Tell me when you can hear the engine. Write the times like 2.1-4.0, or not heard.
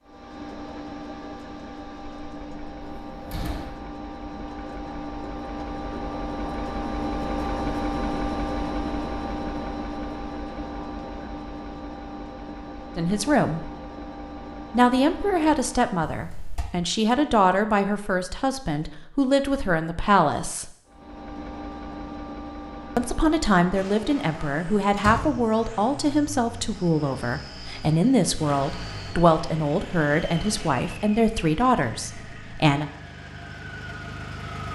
0.0-15.9, 20.9-34.6.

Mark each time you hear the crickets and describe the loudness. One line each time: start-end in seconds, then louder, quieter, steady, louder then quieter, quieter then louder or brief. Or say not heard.
not heard.